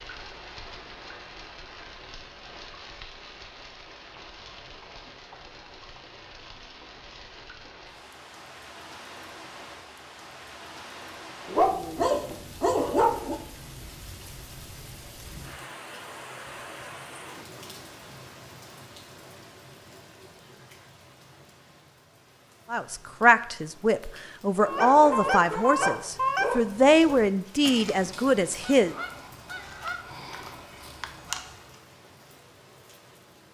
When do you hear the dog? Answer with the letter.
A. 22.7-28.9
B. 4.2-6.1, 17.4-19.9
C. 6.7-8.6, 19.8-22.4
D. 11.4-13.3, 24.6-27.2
D.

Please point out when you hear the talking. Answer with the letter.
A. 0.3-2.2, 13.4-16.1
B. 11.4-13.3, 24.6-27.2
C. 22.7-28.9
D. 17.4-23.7
C.